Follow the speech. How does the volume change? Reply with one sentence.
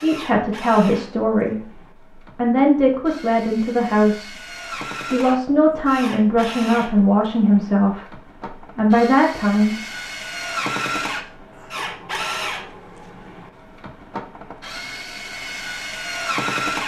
The volume of the speech stays about the same.